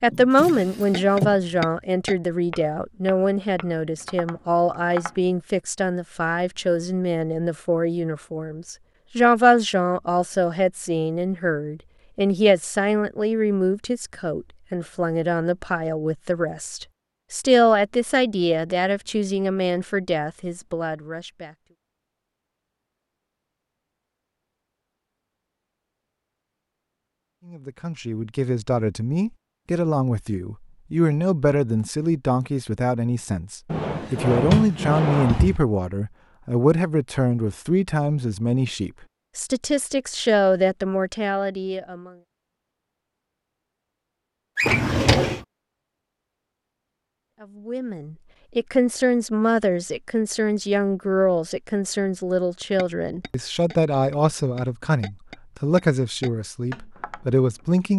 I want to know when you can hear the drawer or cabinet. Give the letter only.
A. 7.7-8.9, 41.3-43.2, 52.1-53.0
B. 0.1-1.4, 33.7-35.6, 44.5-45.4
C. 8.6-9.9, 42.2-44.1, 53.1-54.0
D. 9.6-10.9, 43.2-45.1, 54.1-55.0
B.